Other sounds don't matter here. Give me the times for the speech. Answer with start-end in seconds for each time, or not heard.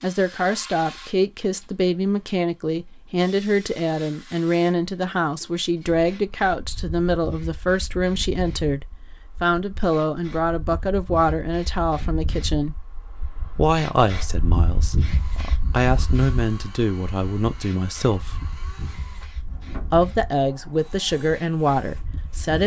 0.0-12.8, 13.6-18.4, 19.9-22.6.